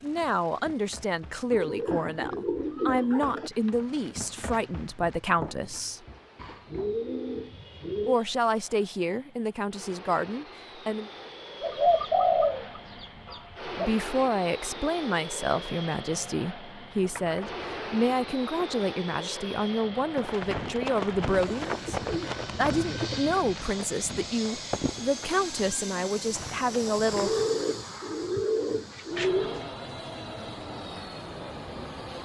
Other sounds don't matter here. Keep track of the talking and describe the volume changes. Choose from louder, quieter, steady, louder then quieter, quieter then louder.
steady.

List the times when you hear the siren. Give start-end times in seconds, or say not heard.
not heard.